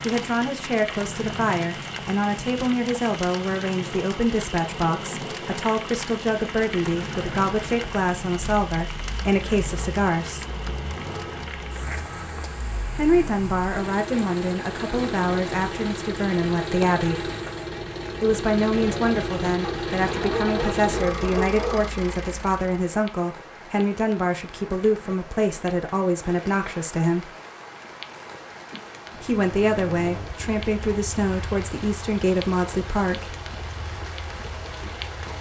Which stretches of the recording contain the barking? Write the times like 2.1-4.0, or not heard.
19.6-21.9.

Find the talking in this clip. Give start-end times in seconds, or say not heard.
0.0-10.4, 12.9-17.2, 18.2-27.3, 29.1-33.4.